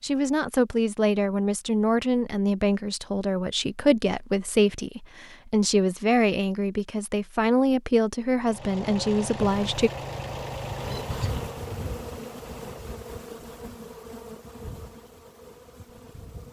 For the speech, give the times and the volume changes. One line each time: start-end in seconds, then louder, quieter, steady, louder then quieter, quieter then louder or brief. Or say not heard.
0.0-9.9 steady.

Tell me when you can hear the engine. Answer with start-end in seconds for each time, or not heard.
8.3-13.1.